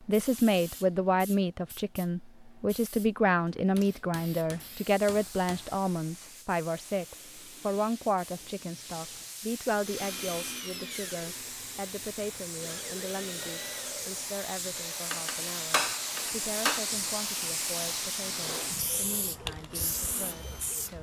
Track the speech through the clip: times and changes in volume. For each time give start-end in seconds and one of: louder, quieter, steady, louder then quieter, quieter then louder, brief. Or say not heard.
0.1-20.9 quieter.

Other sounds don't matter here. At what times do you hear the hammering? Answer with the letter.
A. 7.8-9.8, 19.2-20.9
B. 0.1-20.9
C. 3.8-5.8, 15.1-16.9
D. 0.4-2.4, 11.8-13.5
C.